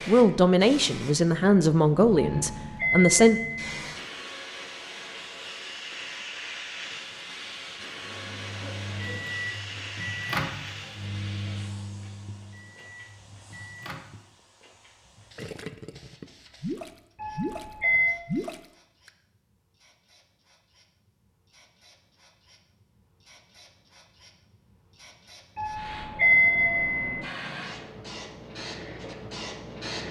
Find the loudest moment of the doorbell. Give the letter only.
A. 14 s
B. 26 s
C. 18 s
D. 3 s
B.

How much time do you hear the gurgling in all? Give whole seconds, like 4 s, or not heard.
3 s.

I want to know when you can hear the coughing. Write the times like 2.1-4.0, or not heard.
8.0-9.1.